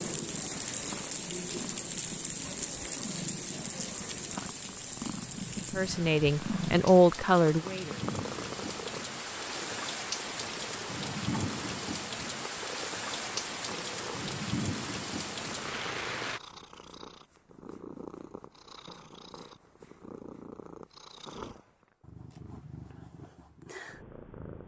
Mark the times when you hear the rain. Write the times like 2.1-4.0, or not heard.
0.0-16.4.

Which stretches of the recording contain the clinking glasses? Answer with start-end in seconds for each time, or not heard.
not heard.